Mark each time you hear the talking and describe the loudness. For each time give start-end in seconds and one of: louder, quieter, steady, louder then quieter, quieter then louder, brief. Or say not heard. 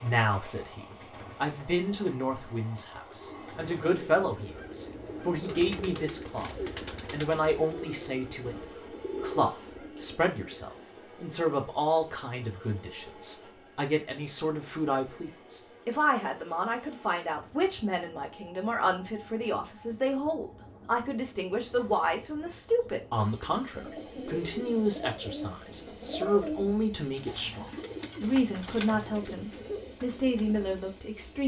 0.0-31.4 steady.